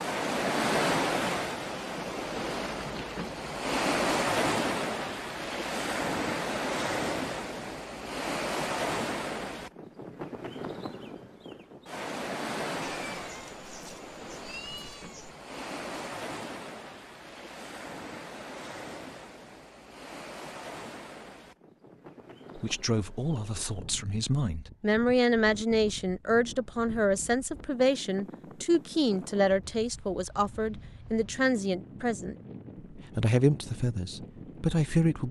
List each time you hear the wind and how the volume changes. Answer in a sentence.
You can hear the wind from 0.0 to 35.2 s, getting quieter.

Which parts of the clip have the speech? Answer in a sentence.
The speech can be heard from 22.6 to 35.2 s.